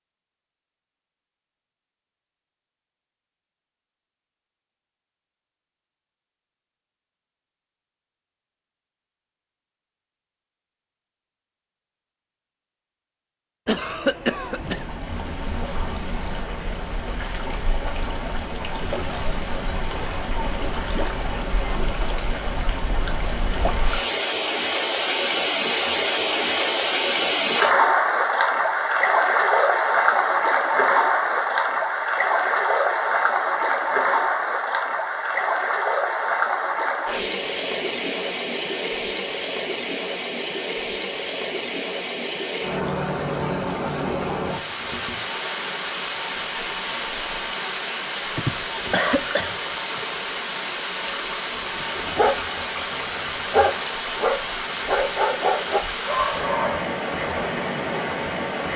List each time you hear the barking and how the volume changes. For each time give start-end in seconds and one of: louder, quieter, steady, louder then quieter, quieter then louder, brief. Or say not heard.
51.8-56.9 steady.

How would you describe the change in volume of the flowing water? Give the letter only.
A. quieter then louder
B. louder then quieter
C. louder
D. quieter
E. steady
B.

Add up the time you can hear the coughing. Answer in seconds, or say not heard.
3 s.